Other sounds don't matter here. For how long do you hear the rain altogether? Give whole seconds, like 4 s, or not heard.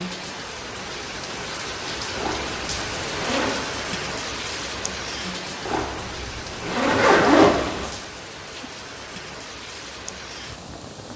11 s.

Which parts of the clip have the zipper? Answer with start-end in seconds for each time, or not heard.
2.1-3.6, 5.7-8.0.